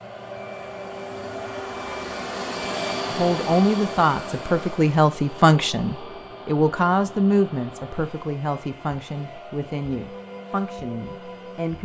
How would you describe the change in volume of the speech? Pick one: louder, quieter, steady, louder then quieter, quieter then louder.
quieter.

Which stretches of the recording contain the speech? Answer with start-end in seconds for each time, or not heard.
3.1-11.7.